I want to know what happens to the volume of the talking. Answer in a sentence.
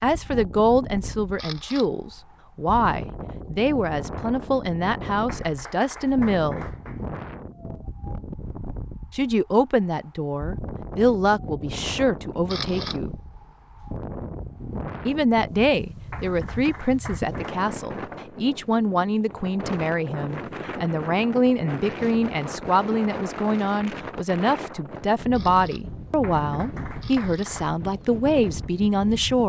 The loudness of the talking stays about the same.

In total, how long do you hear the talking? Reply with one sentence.
You can hear the talking for 25 seconds altogether.